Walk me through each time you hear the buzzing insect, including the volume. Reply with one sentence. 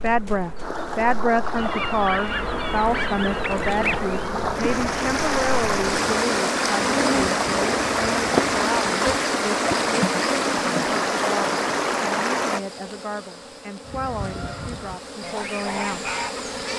You can hear the buzzing insect from 0.0 to 16.7 s, getting louder then quieter.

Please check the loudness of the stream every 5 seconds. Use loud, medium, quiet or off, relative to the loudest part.
medium, loud, loud, off.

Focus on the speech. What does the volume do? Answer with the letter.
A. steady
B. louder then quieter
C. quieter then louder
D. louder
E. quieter
E.